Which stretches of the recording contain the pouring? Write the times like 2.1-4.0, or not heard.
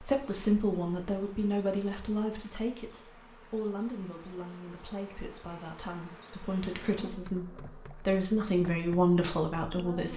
not heard.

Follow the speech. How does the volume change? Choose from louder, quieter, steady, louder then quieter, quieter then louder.
quieter then louder.